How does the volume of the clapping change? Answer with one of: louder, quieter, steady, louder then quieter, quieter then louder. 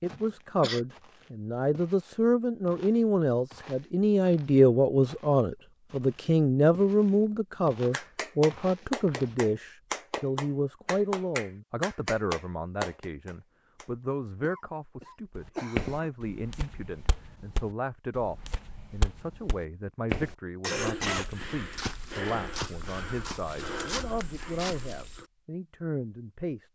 steady.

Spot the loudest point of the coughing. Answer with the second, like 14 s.
21 s.